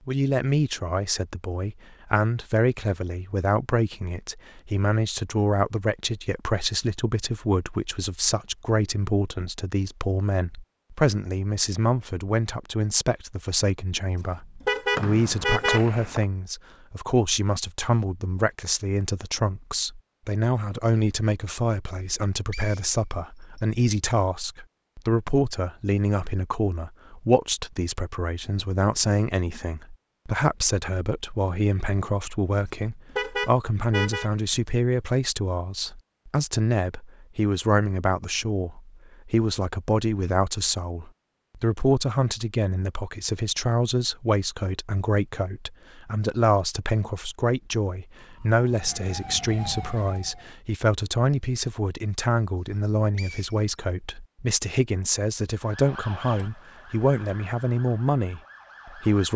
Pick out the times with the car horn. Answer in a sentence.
You can hear the car horn from 14.6 to 15.8 s and from 33.1 to 34.3 s.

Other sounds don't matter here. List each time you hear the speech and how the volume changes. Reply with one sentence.
You can hear the speech from 0.1 to 59.3 s, at a steady volume.